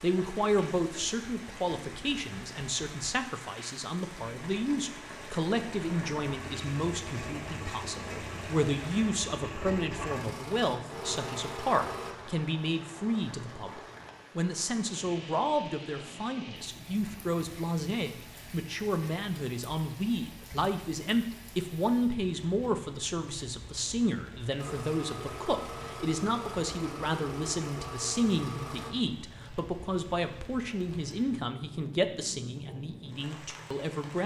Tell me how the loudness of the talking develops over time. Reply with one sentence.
The loudness of the talking stays about the same.